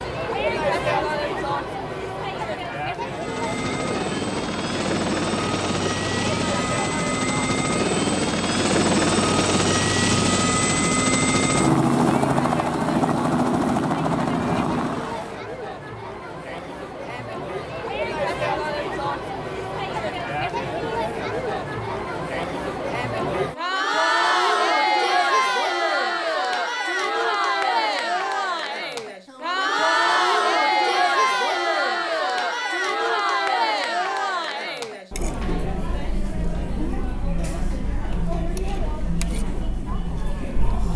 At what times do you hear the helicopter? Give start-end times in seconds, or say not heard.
3.0-15.4.